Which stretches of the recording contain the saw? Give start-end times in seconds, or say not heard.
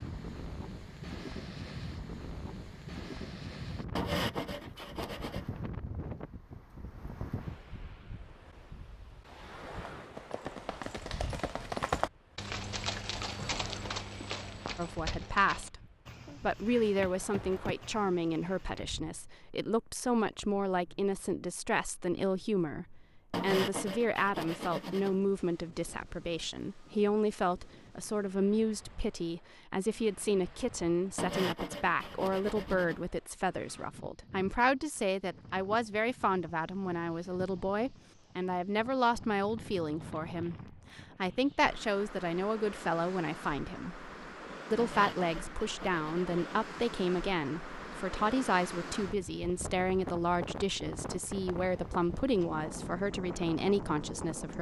4.0-5.5, 23.3-25.1, 31.1-33.0, 44.8-46.4.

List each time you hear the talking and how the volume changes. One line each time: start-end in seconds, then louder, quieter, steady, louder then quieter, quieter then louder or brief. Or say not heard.
14.8-15.8 brief
16.4-44.0 steady
44.7-54.5 steady.